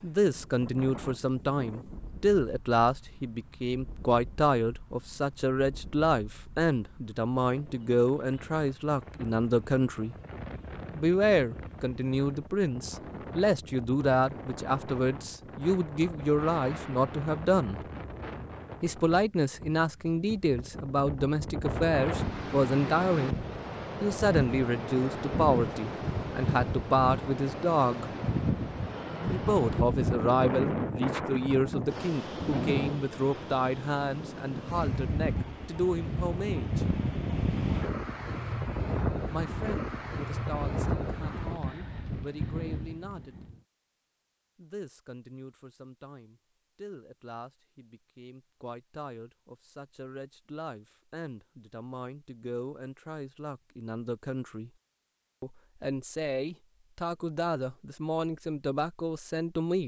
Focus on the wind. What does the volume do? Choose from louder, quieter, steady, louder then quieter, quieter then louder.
louder.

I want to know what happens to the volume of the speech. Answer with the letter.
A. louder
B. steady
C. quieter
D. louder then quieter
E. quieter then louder
C.